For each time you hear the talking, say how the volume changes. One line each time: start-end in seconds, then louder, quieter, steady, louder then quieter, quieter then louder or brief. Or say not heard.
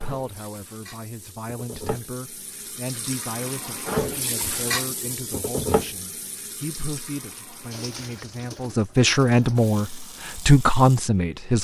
0.0-11.5 louder.